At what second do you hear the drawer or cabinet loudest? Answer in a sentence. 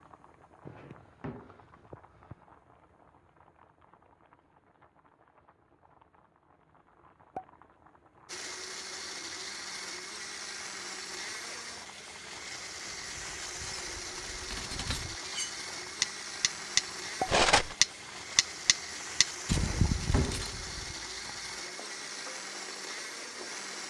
The loudest moment of the drawer or cabinet is at 20 seconds.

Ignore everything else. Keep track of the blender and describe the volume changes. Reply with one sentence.
The volume of the blender stays about the same.